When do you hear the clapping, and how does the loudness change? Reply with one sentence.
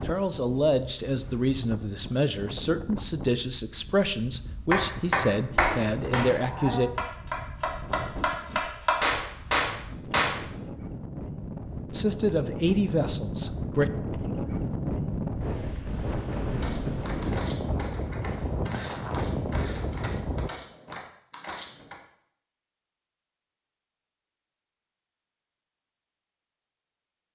The clapping can be heard from 4.7 to 10.4 s, getting quieter then louder.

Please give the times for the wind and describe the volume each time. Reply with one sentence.
You can hear the wind from 0.0 to 20.5 s, getting louder.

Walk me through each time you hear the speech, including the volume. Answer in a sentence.
The speech can be heard from 0.0 to 6.9 s, at a steady volume; and briefly from 11.9 to 13.9 s.